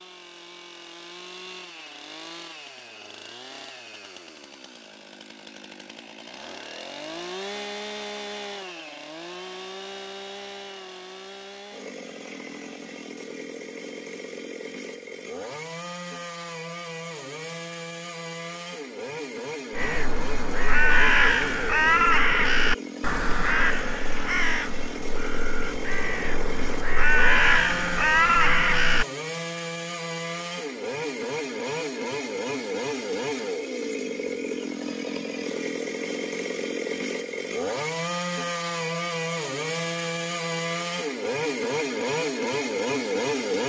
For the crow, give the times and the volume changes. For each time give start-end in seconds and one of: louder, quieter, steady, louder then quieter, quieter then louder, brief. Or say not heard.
19.8-29.1 quieter then louder.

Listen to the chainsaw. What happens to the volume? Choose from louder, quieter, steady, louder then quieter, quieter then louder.
louder.